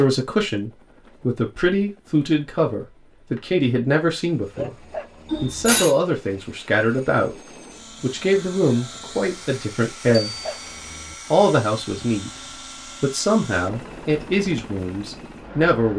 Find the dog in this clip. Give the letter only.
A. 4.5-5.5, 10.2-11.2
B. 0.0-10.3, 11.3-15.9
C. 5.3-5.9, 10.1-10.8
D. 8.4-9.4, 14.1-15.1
A.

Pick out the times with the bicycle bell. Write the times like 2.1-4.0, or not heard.
5.3-5.9, 10.1-10.8.